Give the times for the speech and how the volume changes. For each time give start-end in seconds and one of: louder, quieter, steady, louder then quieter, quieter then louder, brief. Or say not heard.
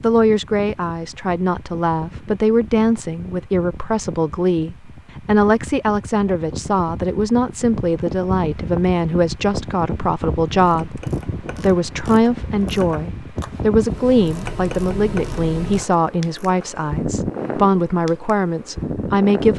0.0-19.5 steady.